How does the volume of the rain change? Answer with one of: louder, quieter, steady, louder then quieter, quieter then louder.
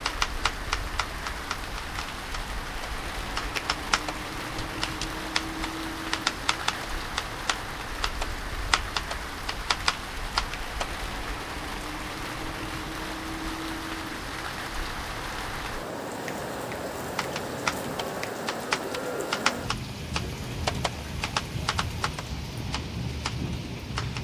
steady.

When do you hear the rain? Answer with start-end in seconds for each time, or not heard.
0.0-24.1.